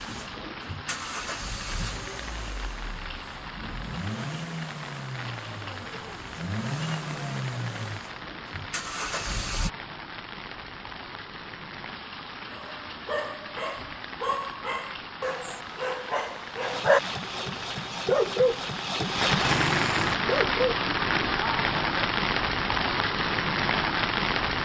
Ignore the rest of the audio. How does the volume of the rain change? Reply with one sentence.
The volume of the rain goes up.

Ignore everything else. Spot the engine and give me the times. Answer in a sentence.
The engine can be heard from 0.0 to 9.7 s and from 16.6 to 20.1 s.